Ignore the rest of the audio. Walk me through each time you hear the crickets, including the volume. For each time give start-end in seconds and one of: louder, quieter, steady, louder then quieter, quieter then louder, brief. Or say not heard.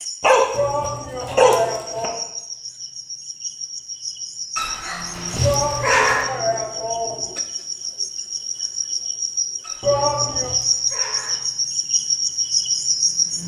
0.0-13.4 louder.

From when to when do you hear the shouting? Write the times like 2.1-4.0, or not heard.
0.5-2.2, 5.4-7.3, 9.8-10.6.